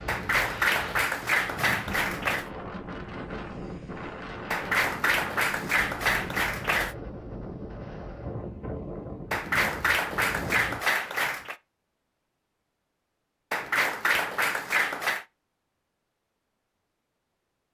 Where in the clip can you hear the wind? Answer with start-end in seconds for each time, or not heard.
0.0-10.8.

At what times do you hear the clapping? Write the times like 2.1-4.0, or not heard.
0.1-2.5, 4.5-7.0, 9.3-11.6, 13.5-15.2.